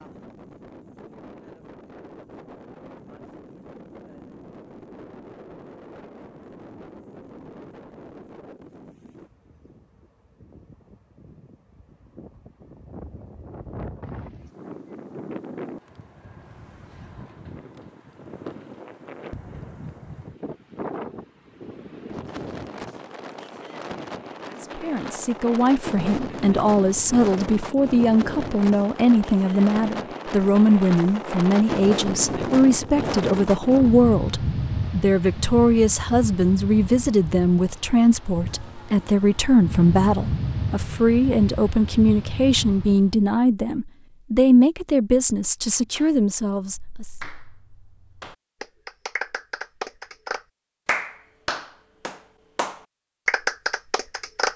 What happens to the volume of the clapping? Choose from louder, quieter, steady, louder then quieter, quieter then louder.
louder.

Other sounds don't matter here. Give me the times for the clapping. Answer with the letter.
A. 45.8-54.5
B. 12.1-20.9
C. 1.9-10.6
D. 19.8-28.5
A.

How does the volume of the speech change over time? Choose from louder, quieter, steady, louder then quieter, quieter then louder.
steady.